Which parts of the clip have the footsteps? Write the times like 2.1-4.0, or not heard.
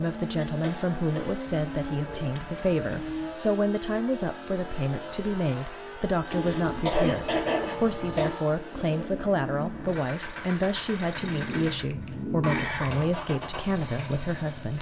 not heard.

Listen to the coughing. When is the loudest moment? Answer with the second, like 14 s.
7 s.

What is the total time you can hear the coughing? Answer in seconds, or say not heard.
4 s.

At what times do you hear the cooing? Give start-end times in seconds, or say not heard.
1.4-3.4, 6.3-8.3, 11.2-12.9.